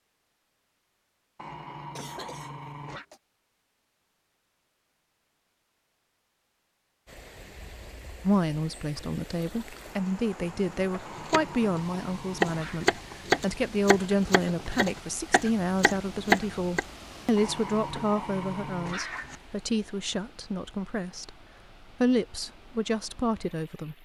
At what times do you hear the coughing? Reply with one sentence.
You can hear the coughing from 1.9 to 3.2 s.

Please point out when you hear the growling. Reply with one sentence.
The growling can be heard from 1.4 to 3.0 s, from 11.1 to 12.9 s and from 17.4 to 19.4 s.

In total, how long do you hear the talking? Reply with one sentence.
The talking can be heard for 15 seconds in total.